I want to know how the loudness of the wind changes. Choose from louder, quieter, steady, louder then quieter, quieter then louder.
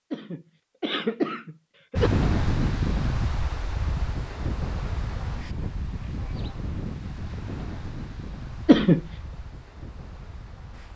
quieter.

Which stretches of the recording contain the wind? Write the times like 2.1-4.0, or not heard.
1.9-10.9.